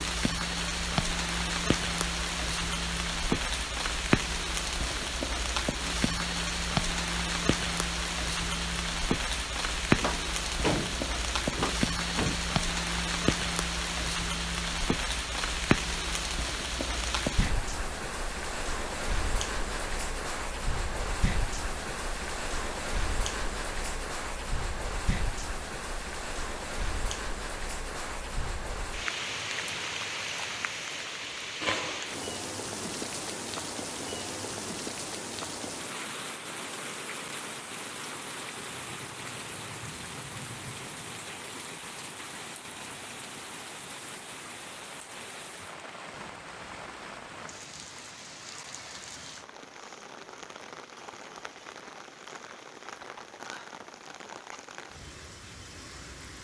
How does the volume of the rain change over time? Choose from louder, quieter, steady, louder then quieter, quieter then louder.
quieter.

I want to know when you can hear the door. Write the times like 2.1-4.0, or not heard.
9.9-12.3.